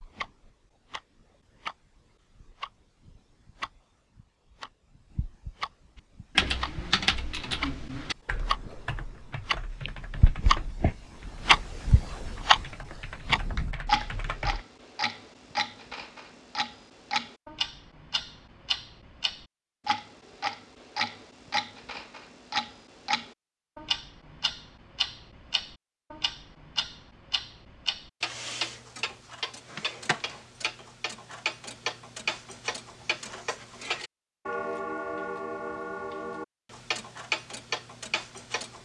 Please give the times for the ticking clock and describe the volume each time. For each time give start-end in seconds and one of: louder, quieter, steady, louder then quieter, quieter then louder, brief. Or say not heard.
0.0-38.8 louder then quieter.